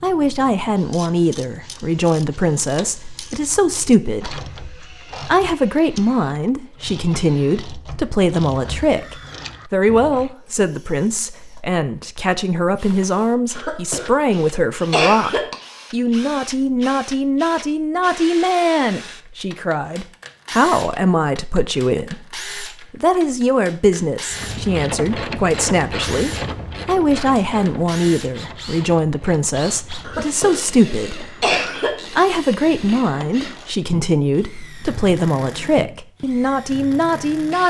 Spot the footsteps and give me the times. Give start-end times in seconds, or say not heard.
not heard.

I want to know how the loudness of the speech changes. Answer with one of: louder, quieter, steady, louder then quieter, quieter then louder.
steady.